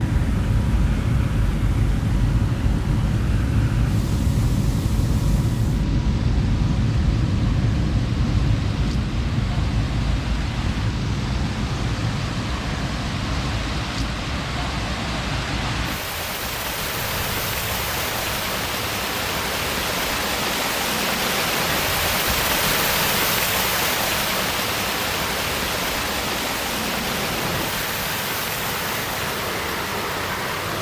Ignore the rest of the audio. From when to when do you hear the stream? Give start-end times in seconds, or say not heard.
0.0-30.7.